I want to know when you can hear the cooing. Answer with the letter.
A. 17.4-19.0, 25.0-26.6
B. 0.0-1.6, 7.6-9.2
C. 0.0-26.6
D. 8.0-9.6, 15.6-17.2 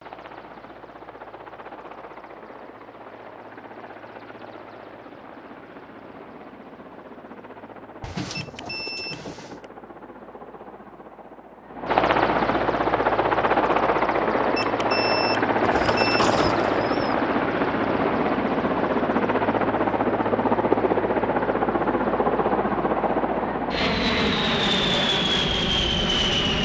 D.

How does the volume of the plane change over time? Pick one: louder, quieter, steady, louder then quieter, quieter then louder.
louder.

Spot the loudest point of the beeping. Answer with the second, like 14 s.
15 s.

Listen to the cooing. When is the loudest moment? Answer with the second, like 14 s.
16 s.